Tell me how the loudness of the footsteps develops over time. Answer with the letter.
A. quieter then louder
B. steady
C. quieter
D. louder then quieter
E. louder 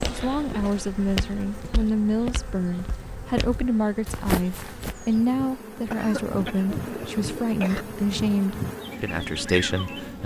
A.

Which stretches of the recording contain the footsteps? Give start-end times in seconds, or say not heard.
0.0-5.0.